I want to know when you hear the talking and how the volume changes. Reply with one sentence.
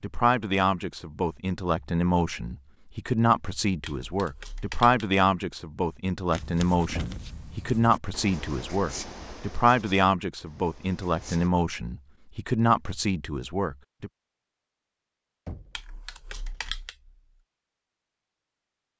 The talking can be heard from 0.0 to 14.1 s, at a steady volume.